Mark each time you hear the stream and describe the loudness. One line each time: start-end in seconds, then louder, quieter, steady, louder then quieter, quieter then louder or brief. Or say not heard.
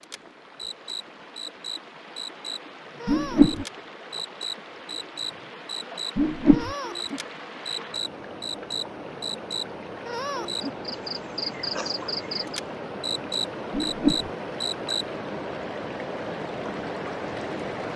0.0-17.9 louder.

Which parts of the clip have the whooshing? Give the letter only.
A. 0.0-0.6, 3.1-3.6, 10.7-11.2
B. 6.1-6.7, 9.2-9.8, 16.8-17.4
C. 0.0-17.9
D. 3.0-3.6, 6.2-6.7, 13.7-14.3
D.